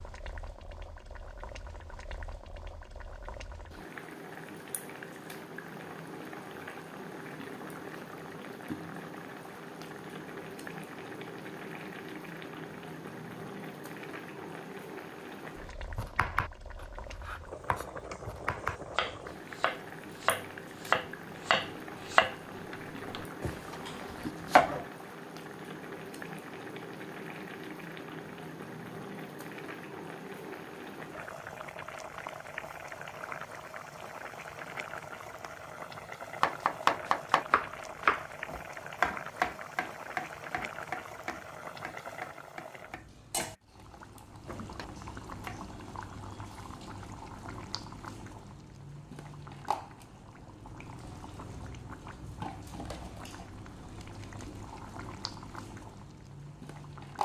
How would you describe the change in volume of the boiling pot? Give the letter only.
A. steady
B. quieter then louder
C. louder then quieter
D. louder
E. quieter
A.